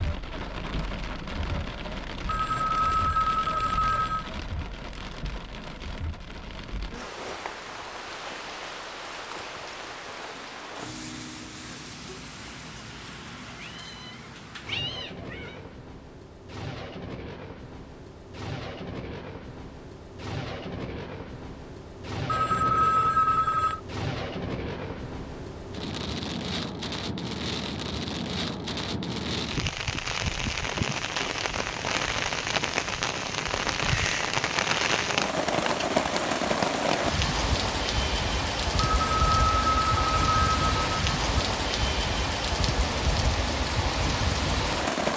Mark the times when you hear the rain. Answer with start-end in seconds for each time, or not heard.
0.0-45.1.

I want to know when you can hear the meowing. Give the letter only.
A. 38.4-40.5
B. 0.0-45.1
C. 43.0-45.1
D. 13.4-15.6
D.